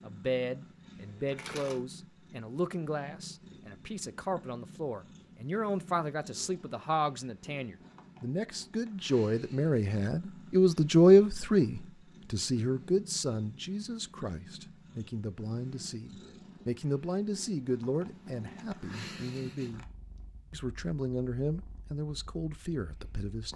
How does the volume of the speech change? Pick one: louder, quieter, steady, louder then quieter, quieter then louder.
louder then quieter.